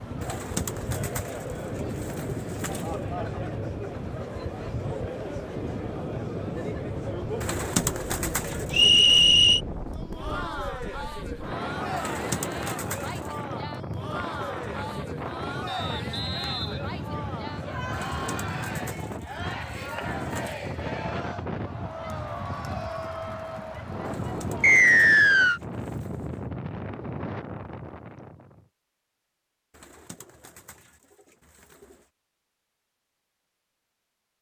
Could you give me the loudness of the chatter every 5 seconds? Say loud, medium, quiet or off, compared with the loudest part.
loud, loud, loud, loud, loud, off, off.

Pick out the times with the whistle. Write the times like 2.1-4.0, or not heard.
8.7-9.6, 15.7-17.7, 24.6-25.6.